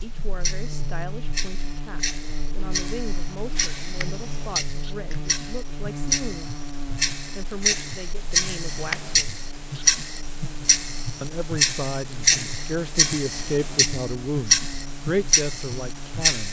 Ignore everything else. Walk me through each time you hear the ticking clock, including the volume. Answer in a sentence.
The ticking clock can be heard from 0.0 to 16.4 s, getting louder.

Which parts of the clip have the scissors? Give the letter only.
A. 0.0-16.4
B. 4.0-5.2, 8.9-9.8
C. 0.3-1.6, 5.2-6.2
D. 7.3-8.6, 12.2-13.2
B.